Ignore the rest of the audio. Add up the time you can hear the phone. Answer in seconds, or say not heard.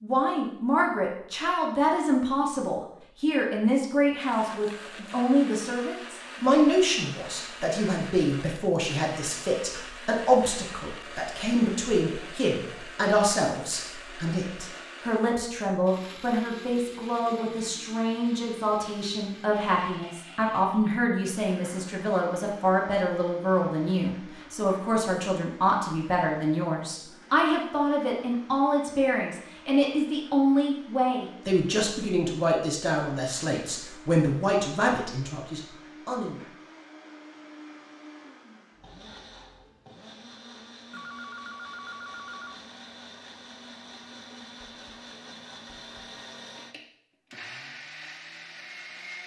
2 s.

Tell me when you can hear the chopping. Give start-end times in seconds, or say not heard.
not heard.